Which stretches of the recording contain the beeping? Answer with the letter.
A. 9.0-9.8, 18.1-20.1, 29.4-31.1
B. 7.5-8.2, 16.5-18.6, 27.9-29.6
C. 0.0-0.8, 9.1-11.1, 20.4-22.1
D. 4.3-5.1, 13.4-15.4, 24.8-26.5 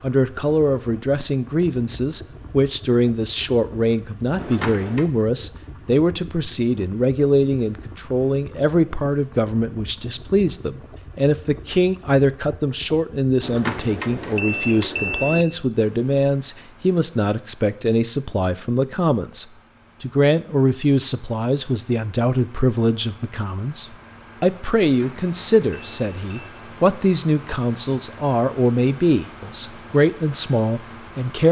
D.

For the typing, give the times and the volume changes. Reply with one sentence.
The typing can't be heard in this clip.